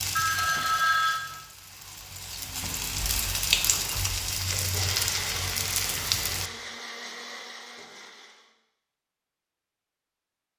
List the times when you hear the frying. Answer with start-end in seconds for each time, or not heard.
0.0-6.5.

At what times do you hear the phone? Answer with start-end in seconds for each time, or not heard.
0.1-1.2.